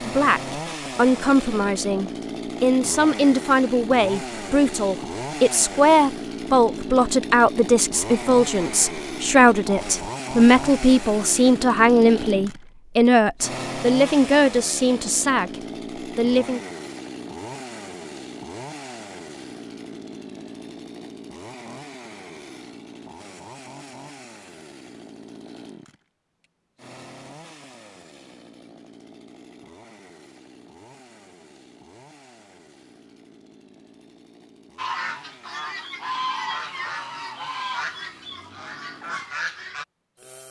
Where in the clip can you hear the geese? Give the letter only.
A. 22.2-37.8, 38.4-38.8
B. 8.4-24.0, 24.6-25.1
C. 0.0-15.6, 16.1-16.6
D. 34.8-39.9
D.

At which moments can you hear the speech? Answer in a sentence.
You can hear the speech from 0.0 to 15.6 s and from 16.1 to 16.6 s.